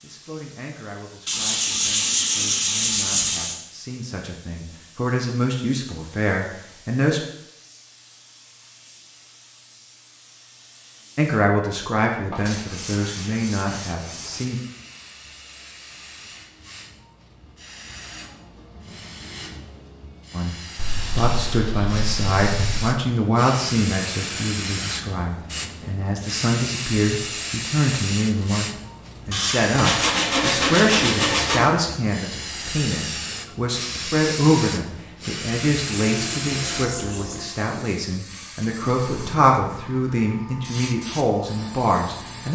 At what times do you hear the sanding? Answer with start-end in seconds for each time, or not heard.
1.2-3.5, 12.4-14.4, 20.8-22.8, 29.3-31.6, 36.0-37.5.